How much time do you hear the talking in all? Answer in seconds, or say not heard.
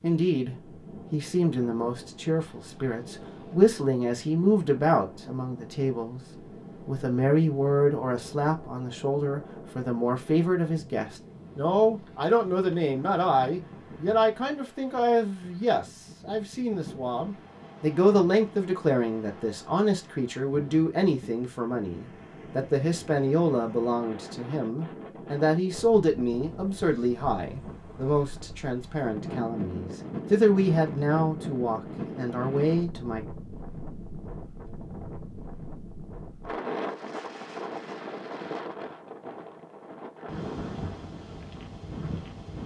33 s.